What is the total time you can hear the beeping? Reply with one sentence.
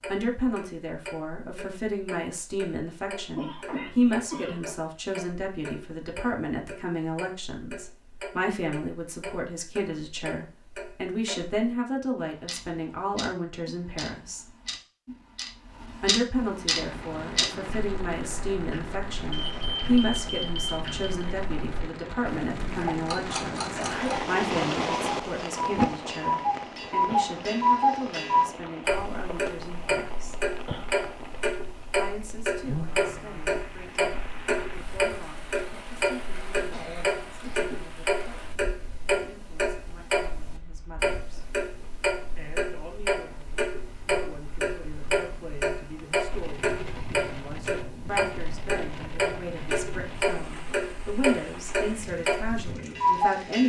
You can hear the beeping for 2 seconds altogether.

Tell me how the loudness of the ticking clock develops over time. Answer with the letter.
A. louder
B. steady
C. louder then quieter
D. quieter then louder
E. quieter
A.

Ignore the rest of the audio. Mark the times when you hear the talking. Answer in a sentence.
The talking can be heard from 0.1 to 14.5 s, from 16.0 to 30.4 s, from 31.9 to 41.5 s and from 42.4 to 53.6 s.